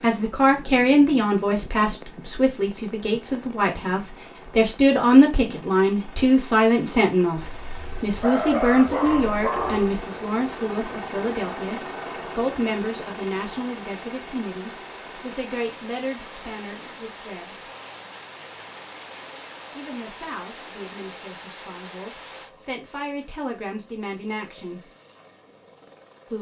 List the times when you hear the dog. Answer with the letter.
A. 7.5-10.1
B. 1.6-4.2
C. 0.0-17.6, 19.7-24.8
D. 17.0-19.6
A.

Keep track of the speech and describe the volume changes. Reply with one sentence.
The volume of the speech goes down.